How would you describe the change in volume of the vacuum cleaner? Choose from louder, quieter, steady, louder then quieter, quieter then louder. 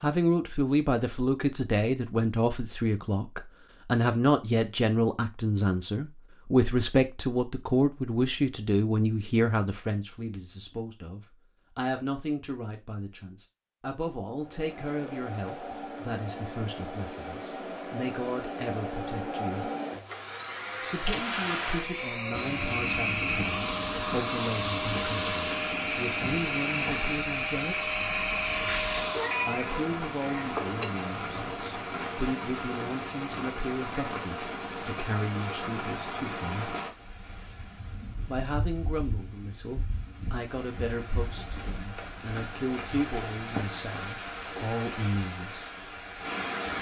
louder.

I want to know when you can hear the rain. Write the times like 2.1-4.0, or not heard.
22.3-46.7.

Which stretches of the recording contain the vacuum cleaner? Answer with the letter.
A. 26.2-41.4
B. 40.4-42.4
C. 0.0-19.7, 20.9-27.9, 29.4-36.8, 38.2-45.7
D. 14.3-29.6
D.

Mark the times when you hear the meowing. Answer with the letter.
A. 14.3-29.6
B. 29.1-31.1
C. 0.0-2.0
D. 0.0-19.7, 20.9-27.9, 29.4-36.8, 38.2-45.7
B.